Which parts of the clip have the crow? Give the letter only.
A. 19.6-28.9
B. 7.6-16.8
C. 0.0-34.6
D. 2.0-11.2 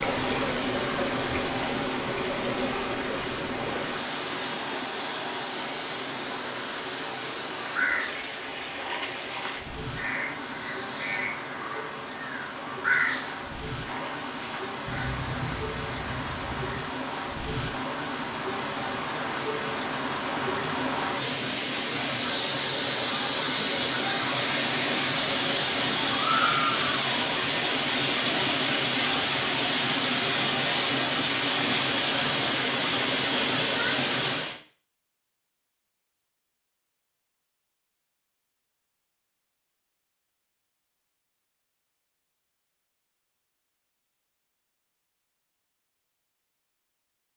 B.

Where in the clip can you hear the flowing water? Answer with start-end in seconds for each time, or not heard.
0.0-34.6.